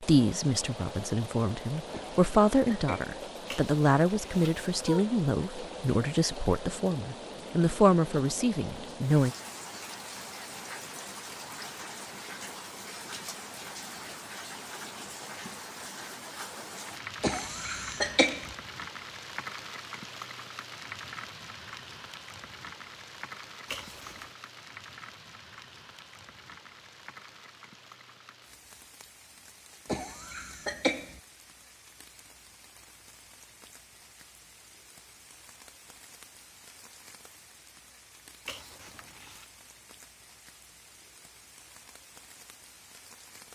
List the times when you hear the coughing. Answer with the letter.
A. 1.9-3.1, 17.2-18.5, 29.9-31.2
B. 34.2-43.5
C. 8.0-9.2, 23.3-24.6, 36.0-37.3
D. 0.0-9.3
A.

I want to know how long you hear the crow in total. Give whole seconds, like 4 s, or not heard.
not heard.